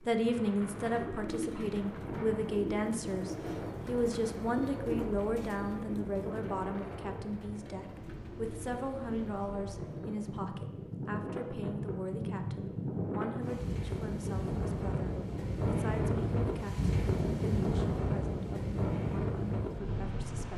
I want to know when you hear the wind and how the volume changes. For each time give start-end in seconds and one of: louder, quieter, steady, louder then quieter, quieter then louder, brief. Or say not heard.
0.0-20.5 louder.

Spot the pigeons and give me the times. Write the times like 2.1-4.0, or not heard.
0.8-10.4.